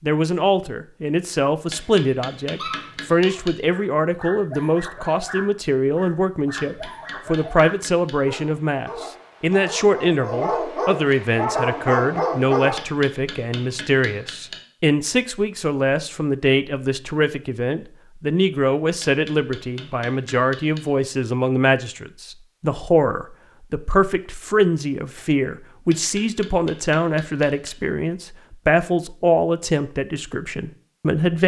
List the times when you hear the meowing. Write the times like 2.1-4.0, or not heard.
not heard.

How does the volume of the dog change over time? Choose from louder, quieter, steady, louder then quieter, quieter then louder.
louder.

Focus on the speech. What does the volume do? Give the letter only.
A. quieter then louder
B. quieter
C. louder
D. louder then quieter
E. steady
E.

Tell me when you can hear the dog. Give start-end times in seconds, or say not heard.
2.5-12.8.